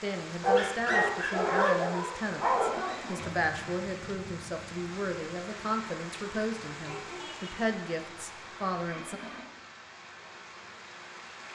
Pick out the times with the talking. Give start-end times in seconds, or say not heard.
0.0-9.2.